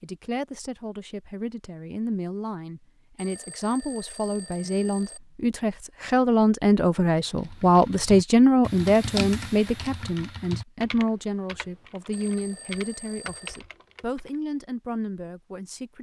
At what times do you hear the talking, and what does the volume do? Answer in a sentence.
You can hear the talking from 0.0 to 15.9 s, getting louder then quieter.